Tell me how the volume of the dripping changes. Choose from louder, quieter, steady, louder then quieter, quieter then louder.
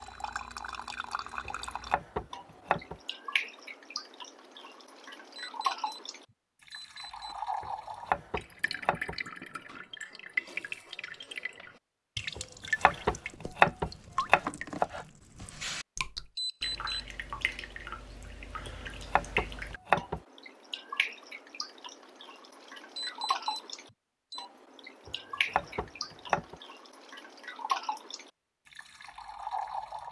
steady.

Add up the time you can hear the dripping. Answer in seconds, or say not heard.
30 s.